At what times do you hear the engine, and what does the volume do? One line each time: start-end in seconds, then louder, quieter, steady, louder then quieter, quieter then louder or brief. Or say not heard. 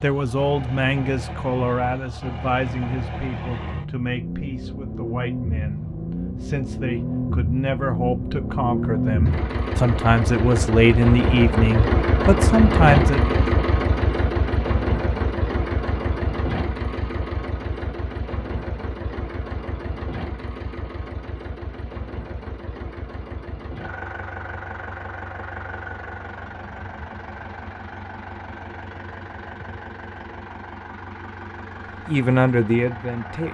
0.0-33.4 louder then quieter.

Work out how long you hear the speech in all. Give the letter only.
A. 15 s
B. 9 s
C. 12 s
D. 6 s
A.